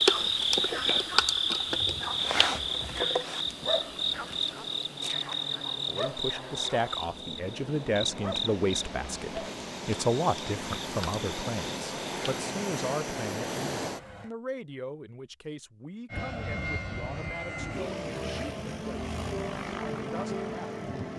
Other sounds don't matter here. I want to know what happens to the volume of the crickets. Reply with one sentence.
The loudness of the crickets goes down.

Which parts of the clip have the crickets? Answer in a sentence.
You can hear the crickets from 0.0 to 12.4 s.